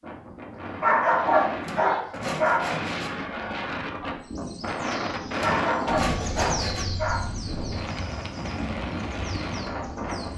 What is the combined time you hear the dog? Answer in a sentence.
The dog can be heard for 4 seconds in total.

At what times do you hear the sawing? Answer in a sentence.
The sawing can be heard from 1.6 to 3.1 s and from 5.3 to 6.9 s.